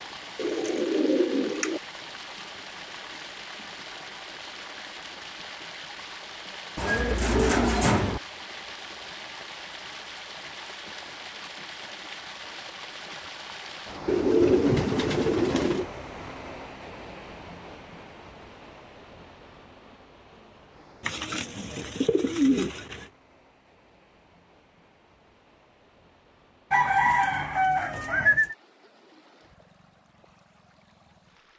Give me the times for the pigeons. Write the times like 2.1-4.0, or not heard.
0.3-1.8, 6.8-8.2, 14.1-15.8, 21.0-23.1, 26.7-28.6.